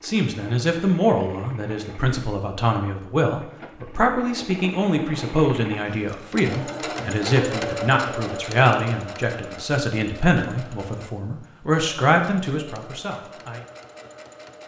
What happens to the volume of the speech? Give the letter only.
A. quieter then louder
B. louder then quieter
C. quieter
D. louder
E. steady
E.